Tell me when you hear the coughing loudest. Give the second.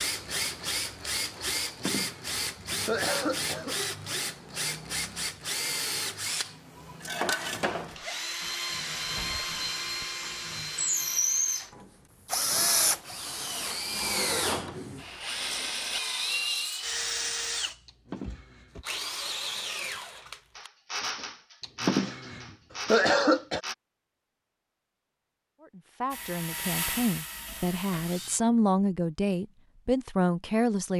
23 s.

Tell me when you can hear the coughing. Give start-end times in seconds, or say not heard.
1.6-3.8, 17.9-18.8, 21.6-23.6.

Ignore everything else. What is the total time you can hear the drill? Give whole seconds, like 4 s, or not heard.
26 s.